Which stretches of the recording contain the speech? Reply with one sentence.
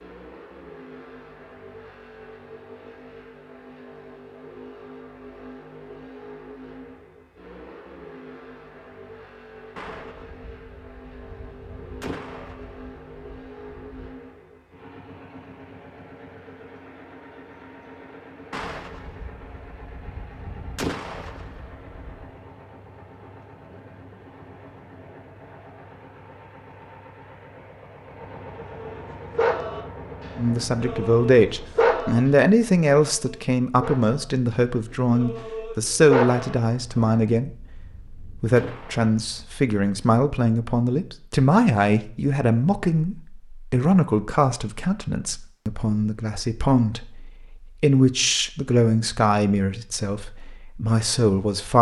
You can hear the speech from 30.4 to 51.7 s.